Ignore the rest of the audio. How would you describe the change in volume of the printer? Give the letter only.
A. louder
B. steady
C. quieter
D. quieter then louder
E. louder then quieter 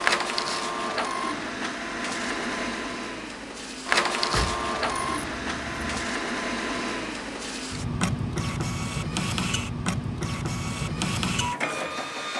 B.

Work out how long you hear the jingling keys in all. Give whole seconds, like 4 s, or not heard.
2 s.